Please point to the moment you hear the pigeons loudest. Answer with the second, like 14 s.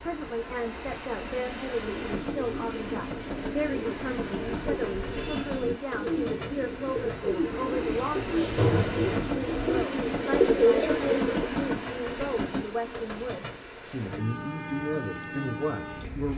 11 s.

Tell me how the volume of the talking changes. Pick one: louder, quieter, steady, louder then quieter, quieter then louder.
steady.